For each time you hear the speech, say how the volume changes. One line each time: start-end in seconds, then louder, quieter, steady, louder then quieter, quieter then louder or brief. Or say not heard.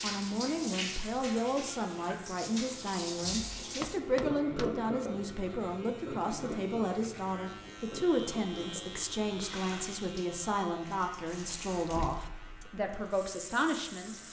0.0-14.2 steady.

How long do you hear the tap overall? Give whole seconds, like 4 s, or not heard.
14 s.